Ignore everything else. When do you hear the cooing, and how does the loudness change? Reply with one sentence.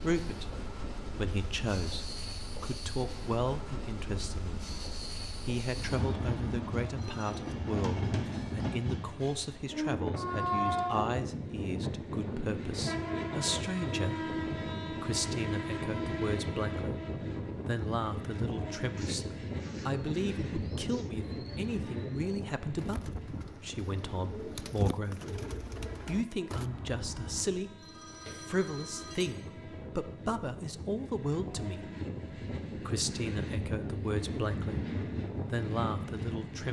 The cooing can be heard from 18.9 to 26.6 s, getting louder.